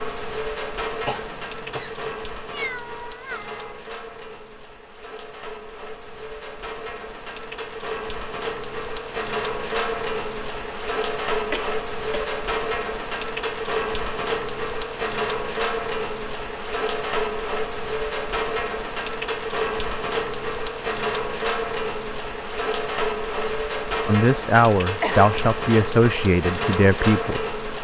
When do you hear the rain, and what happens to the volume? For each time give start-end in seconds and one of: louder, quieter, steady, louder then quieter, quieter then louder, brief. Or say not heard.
0.0-27.8 louder.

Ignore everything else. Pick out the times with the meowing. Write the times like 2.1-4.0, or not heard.
2.5-3.7.